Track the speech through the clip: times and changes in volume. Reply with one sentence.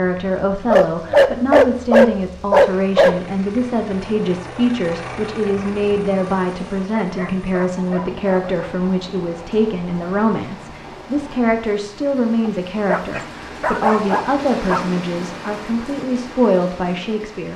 You can hear the speech from 0.0 to 17.5 s, at a steady volume.